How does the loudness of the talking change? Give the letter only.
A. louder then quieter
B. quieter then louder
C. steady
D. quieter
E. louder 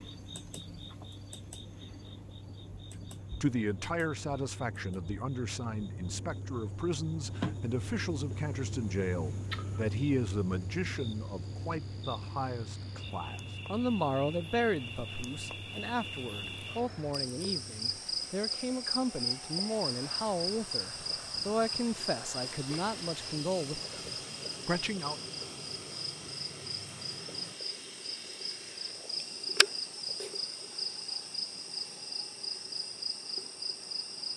C.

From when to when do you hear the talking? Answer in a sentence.
You can hear the talking from 3.4 to 25.2 s.